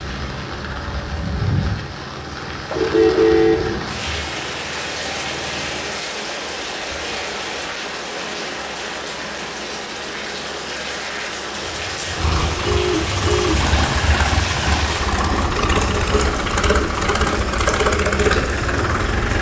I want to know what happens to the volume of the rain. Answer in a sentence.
The volume of the rain stays about the same.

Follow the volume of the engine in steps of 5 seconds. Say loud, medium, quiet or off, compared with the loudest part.
quiet, quiet, medium, loud.